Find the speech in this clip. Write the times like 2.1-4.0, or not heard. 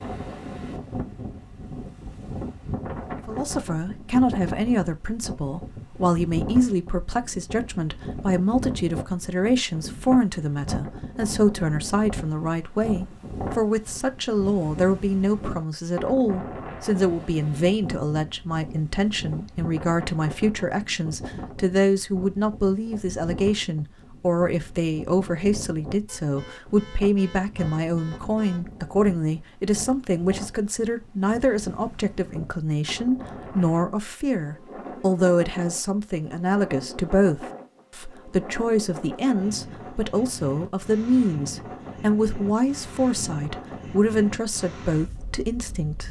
3.2-46.0.